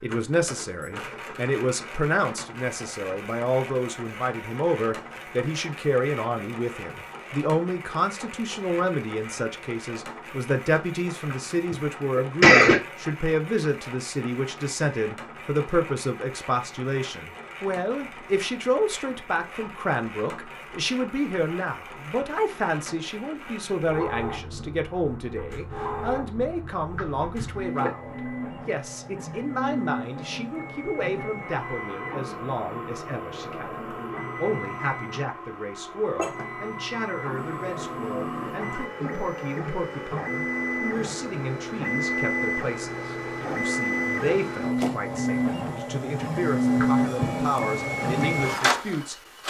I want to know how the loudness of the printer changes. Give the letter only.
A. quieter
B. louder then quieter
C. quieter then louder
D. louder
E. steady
D.